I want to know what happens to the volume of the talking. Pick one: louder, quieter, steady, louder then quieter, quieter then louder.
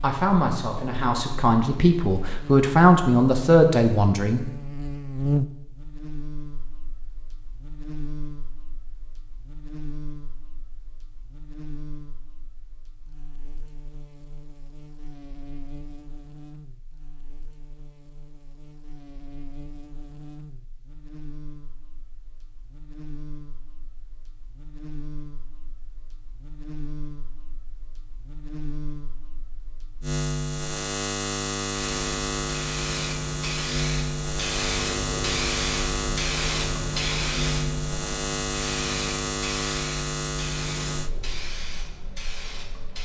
louder.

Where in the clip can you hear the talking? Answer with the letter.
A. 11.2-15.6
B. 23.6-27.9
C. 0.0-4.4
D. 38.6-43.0
C.